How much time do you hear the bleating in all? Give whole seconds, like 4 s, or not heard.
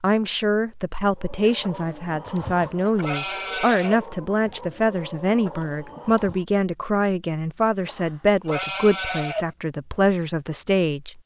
3 s.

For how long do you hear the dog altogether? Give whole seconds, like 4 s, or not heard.
not heard.